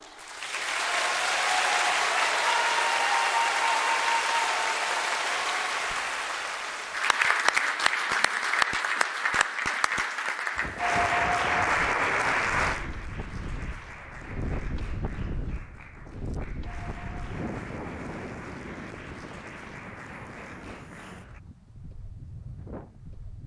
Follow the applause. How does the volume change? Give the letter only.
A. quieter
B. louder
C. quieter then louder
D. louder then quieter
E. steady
A.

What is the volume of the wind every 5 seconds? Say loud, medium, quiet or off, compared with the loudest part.
off, off, loud, loud, medium.